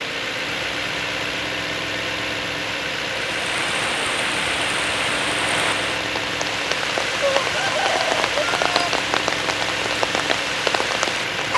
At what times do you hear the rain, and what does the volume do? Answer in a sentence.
You can hear the rain from 3.4 to 11.4 s, at a steady volume.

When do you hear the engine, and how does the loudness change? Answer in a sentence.
The engine can be heard from 0.0 to 11.5 s, at a steady volume.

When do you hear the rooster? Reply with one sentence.
The rooster can be heard from 7.2 to 8.9 s.